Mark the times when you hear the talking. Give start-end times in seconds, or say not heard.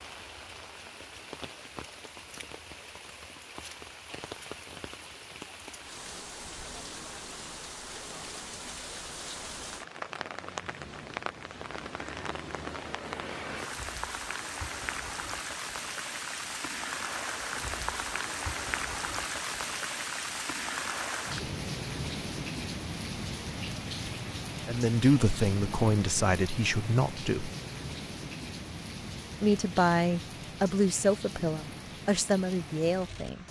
24.6-27.5, 29.4-33.4.